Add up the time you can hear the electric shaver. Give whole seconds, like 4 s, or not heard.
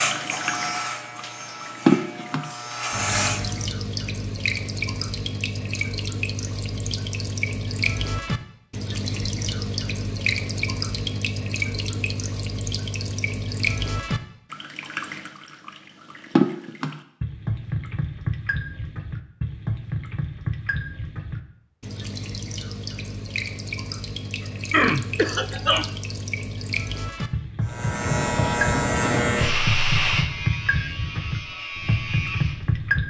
9 s.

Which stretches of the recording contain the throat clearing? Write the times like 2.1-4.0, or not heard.
24.7-25.9.